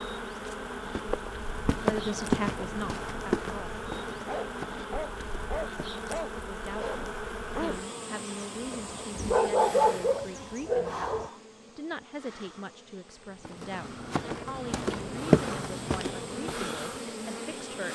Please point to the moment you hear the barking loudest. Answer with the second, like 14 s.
10 s.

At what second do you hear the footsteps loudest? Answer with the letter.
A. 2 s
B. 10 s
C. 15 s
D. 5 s
C.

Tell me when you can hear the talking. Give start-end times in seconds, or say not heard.
1.8-3.8, 6.3-17.9.